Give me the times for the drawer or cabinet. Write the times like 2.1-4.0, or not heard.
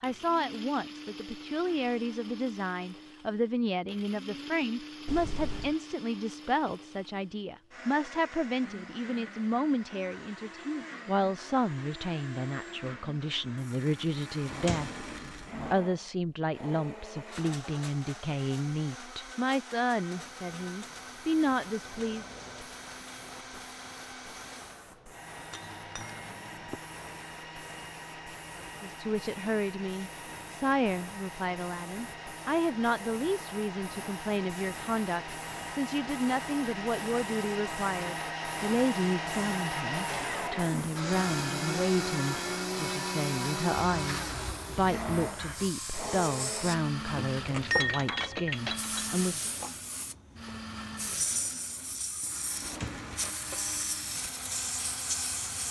14.4-15.8, 52.6-53.3.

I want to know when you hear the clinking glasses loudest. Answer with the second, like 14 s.
48 s.